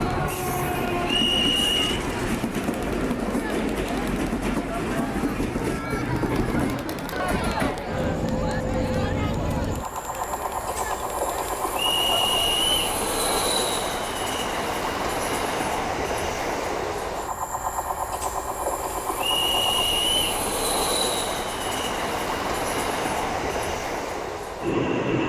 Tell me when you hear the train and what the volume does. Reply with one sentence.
You can hear the train from 0.0 to 25.2 s, at a steady volume.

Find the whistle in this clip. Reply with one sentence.
The whistle can be heard from 1.1 to 1.9 s, from 11.8 to 12.8 s and from 19.1 to 20.2 s.